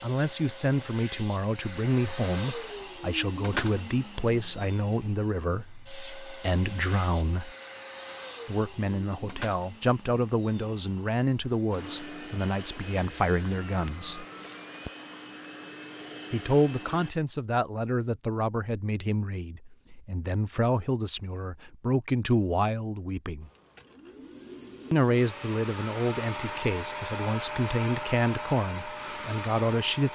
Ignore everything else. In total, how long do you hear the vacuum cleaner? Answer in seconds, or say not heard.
24 s.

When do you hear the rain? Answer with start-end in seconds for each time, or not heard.
not heard.